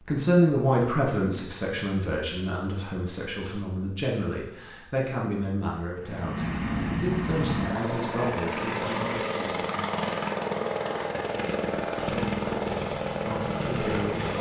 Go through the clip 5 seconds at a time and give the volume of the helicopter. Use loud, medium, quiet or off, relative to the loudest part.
off, loud, loud.